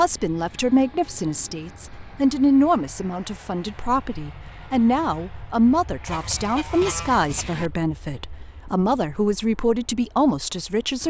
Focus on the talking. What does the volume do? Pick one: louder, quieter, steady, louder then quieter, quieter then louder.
steady.